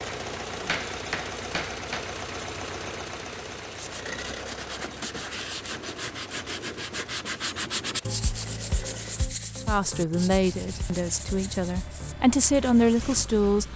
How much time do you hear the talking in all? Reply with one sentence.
You can hear the talking for 4 seconds altogether.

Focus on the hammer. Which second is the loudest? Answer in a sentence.
The loudest moment of the hammer is at 1 second.